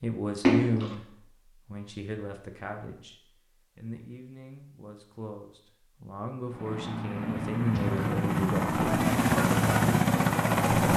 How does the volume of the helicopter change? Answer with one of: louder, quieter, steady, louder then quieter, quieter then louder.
louder.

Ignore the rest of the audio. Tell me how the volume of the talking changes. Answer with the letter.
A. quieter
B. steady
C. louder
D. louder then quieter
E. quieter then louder
E.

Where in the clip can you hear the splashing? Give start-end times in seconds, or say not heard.
0.4-0.9, 7.7-8.2.